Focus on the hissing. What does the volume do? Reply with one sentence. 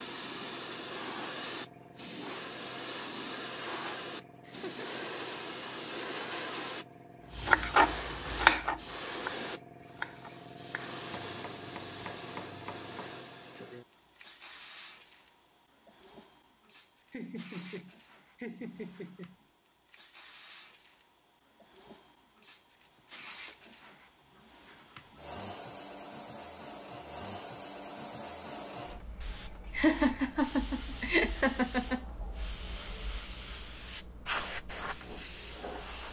The volume of the hissing goes down, then up.